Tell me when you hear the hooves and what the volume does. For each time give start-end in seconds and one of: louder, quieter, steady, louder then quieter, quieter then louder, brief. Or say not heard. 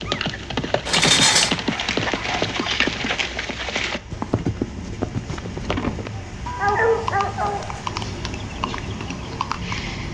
0.0-10.0 quieter.